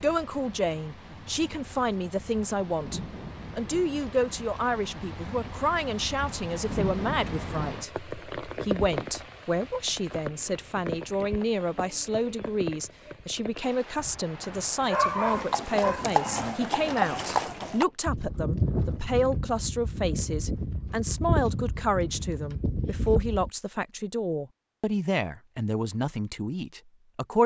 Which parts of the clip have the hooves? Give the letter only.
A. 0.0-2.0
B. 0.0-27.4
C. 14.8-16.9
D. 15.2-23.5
D.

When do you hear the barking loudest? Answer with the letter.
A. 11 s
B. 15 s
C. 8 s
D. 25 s
B.